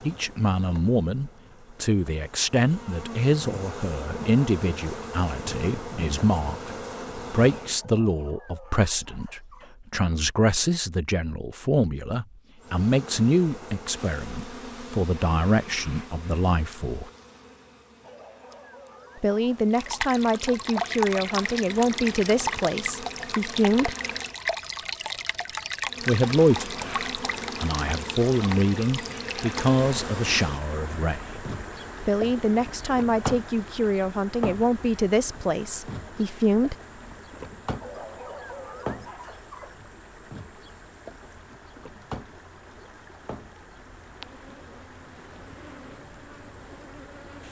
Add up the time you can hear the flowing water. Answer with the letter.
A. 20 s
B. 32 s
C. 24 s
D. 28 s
D.